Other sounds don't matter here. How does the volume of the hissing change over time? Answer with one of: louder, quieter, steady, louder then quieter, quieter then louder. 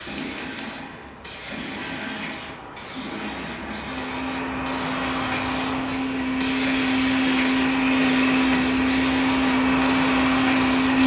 louder.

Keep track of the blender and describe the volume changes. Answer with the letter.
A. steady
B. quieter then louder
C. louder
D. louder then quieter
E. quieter
C.